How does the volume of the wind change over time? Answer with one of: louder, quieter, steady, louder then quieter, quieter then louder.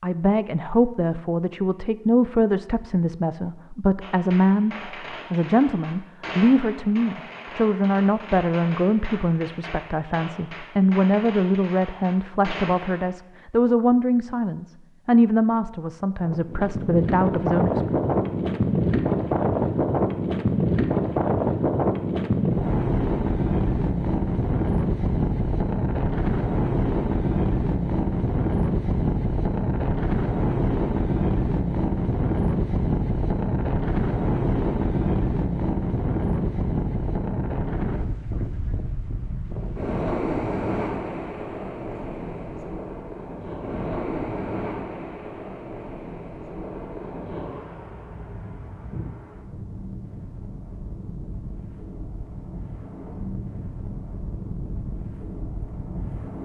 quieter.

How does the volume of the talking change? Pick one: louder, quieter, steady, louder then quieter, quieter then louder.
steady.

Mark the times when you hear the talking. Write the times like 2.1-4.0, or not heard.
0.0-17.9.